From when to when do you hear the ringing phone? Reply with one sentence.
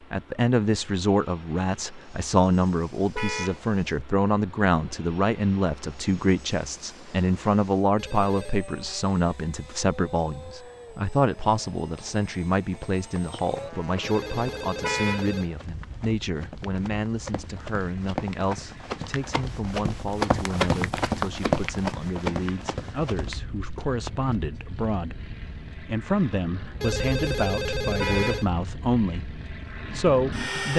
The ringing phone can be heard from 8.0 to 8.6 s, from 14.0 to 15.5 s and from 26.8 to 28.5 s.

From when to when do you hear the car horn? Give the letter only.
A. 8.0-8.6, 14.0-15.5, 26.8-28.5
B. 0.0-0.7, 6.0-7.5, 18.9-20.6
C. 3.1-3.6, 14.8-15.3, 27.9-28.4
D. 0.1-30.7
C.